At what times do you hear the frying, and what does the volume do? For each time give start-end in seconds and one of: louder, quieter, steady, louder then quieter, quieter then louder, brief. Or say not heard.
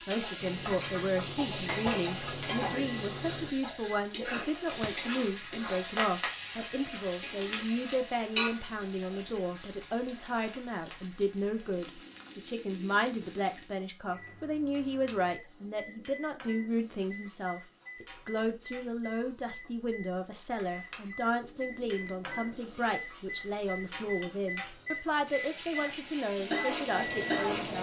0.0-27.7 quieter then louder.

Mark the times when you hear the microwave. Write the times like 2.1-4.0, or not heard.
0.0-4.0, 14.0-27.7.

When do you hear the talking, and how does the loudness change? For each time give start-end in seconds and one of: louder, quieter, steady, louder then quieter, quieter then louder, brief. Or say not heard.
0.1-27.7 steady.